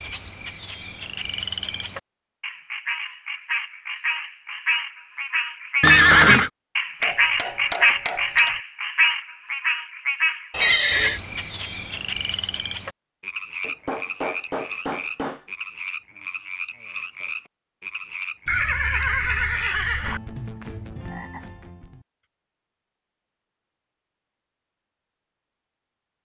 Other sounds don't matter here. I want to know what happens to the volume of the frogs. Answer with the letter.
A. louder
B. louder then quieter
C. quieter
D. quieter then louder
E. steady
B.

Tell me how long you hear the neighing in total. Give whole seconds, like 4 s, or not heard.
3 s.